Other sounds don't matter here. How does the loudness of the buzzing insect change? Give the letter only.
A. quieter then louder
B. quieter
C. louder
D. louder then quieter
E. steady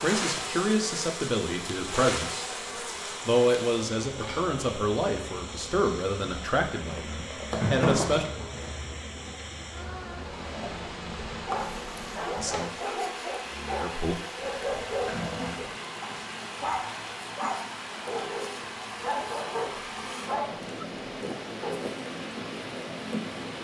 B.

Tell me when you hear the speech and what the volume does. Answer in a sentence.
The speech can be heard briefly from 0.0 to 2.5 s; from 3.2 to 8.2 s, at a steady volume; and briefly from 12.3 to 14.2 s.